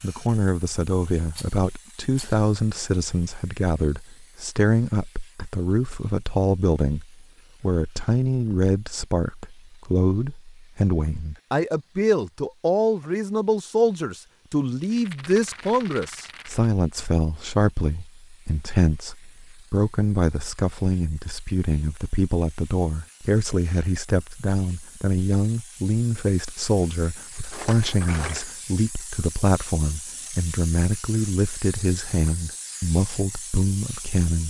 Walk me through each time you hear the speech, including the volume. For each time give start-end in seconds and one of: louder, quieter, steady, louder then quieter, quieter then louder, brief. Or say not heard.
0.0-34.4 steady.